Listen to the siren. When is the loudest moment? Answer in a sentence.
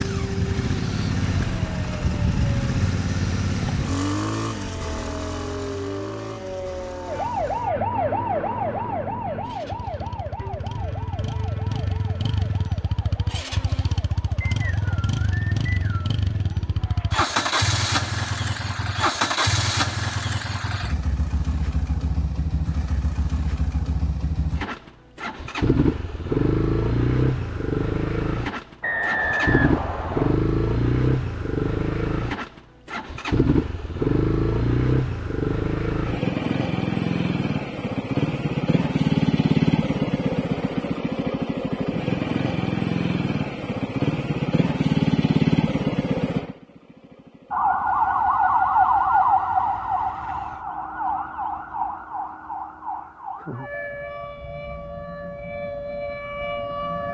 The loudest moment of the siren is at 49 seconds.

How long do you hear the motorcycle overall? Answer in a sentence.
You can hear the motorcycle for 51 seconds altogether.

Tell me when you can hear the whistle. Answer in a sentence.
The whistle can be heard from 14.4 to 16.1 s and from 28.8 to 30.4 s.